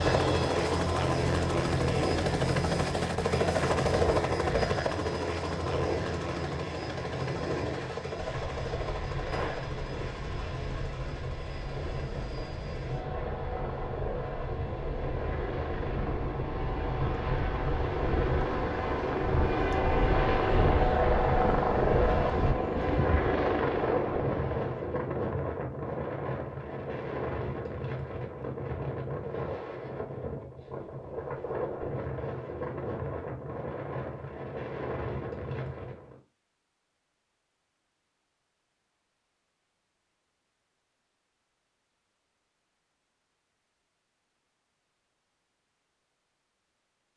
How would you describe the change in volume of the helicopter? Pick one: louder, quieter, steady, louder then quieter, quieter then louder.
quieter then louder.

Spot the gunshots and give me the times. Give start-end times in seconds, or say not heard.
9.3-9.8.